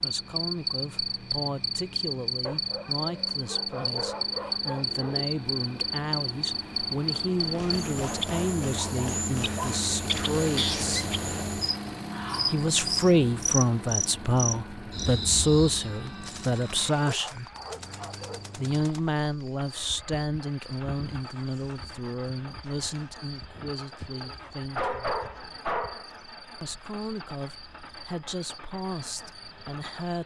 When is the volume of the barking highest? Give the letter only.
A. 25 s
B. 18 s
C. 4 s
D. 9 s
A.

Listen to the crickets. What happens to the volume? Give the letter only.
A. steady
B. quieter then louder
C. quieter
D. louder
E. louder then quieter
C.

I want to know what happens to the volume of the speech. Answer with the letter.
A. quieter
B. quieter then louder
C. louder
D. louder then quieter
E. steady
D.